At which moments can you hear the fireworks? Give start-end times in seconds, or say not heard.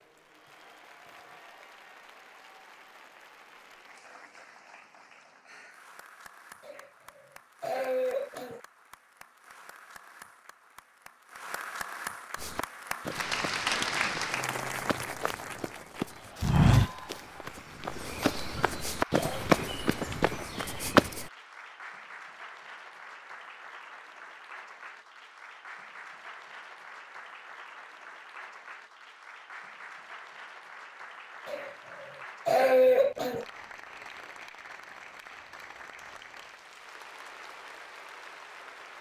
not heard.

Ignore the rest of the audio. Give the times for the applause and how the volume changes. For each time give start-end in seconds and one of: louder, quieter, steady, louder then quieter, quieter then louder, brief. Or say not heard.
0.0-38.9 louder then quieter.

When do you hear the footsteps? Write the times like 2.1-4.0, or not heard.
12.3-21.3.